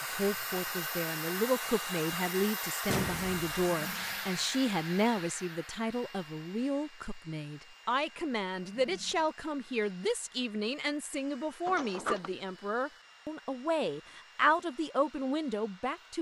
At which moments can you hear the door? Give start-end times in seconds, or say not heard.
2.9-3.5, 11.7-12.3.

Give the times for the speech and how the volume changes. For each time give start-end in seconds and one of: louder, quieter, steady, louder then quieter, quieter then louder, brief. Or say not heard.
0.1-16.1 steady.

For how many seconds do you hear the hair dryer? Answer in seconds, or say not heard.
16 s.